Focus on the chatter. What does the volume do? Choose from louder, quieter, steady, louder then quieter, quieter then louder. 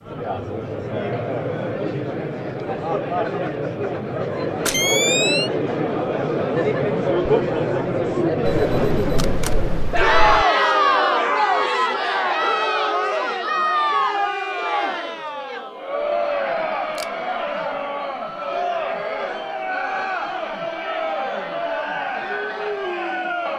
louder then quieter.